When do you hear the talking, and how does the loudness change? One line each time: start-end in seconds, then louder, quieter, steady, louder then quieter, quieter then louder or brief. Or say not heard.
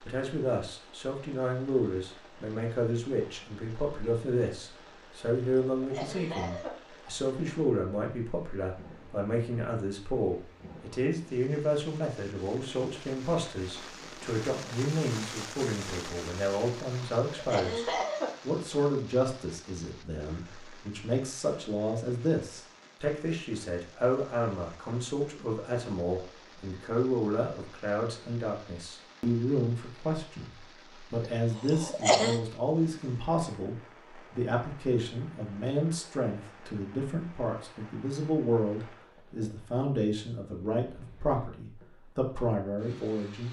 0.0-43.4 steady.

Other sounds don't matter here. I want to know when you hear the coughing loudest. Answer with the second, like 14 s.
32 s.